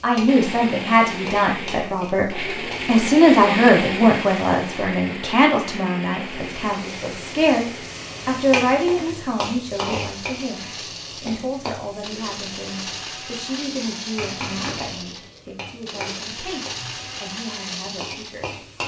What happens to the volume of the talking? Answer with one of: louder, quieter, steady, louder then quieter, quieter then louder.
quieter.